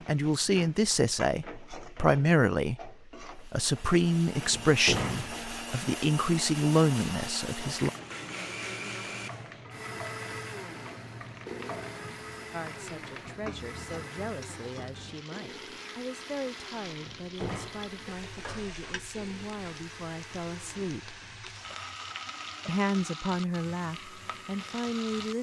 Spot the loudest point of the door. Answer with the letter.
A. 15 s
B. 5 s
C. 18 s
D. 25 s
B.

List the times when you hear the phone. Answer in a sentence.
You can't hear the phone here.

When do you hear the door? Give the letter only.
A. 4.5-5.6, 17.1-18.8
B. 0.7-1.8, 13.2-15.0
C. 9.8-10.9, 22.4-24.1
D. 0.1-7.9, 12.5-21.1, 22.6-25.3
A.